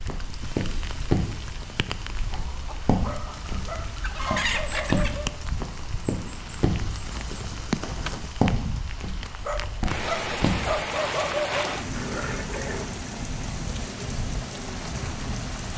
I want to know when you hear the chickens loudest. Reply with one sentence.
The volume of the chickens peaks at 4 seconds.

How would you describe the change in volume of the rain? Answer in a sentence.
The volume of the rain goes up.